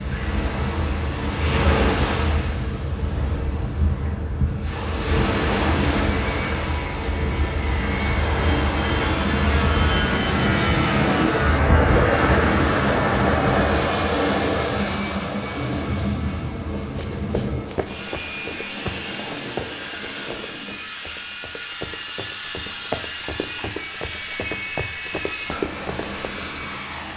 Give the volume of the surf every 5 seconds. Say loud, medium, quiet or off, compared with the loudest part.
loud, loud, loud, off, off, off.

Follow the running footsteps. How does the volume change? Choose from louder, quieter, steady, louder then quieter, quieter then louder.
quieter then louder.